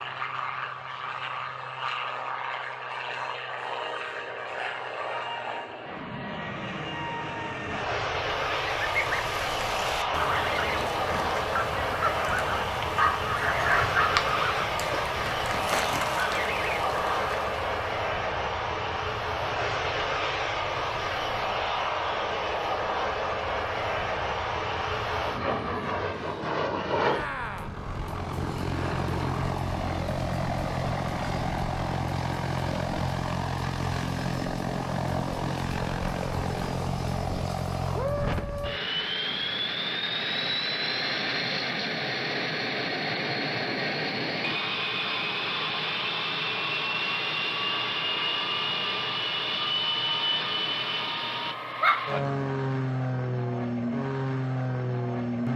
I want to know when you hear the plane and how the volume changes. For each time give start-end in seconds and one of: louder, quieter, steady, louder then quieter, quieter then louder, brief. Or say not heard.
0.0-55.5 steady.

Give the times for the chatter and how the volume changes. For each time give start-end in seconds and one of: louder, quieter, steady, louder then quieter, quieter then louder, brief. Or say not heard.
not heard.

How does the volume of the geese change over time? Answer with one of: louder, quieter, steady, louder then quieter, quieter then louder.
steady.